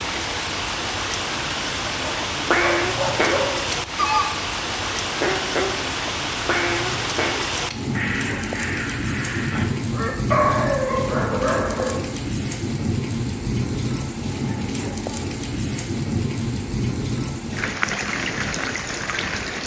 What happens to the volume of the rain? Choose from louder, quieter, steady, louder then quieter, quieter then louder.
steady.